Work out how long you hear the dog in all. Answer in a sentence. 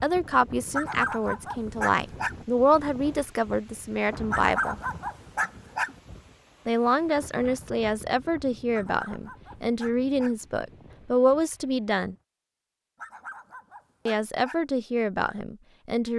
You can hear the dog for 7 seconds altogether.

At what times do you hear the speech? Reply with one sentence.
The speech can be heard from 0.0 to 4.8 s, from 6.7 to 12.2 s and from 14.1 to 16.1 s.